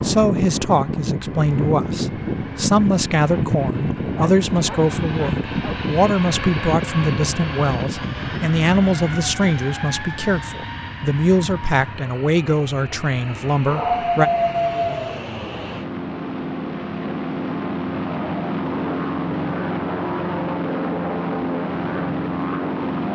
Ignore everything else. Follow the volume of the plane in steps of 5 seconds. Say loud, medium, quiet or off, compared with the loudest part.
loud, loud, medium, loud, loud.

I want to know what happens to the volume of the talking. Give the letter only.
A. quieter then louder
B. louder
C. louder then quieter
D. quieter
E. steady
E.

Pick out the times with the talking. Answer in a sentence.
The talking can be heard from 0.0 to 14.3 s.